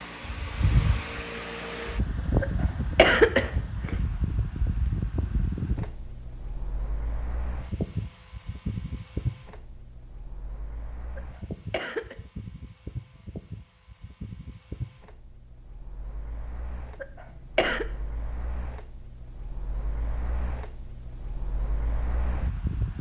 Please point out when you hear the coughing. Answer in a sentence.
The coughing can be heard from 2.4 to 4.0 s, from 11.2 to 12.2 s and from 17.0 to 17.9 s.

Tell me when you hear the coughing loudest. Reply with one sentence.
The loudest moment of the coughing is at 3 seconds.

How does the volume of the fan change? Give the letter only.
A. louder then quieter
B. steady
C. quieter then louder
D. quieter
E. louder
D.